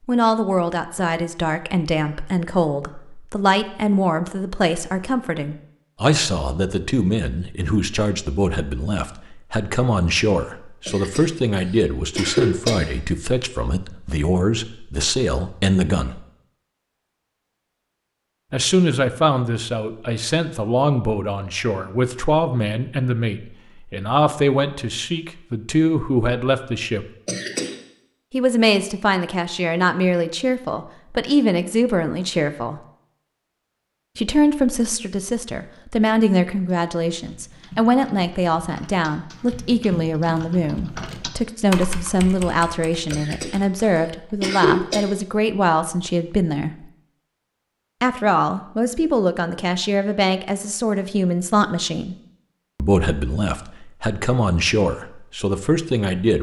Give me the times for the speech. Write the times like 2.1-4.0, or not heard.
0.1-16.2, 18.5-27.1, 28.3-32.8, 34.1-46.9, 48.0-52.1, 52.8-56.3.